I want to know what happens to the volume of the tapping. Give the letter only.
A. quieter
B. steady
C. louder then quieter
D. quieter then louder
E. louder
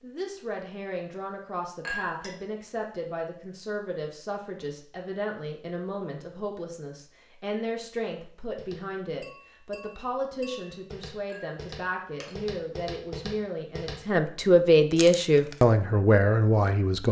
E.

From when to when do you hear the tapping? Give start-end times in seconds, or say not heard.
8.6-14.1.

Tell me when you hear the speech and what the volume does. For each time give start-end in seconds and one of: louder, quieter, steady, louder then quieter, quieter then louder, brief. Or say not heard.
0.0-17.0 louder.